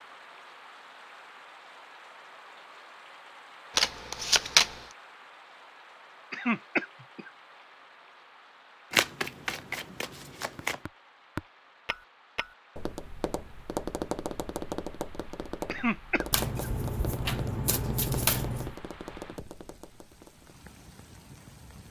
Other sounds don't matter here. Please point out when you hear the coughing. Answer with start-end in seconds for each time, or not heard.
6.3-7.3, 15.7-16.7.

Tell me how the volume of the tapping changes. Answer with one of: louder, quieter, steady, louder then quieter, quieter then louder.
quieter.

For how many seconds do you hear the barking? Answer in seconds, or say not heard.
not heard.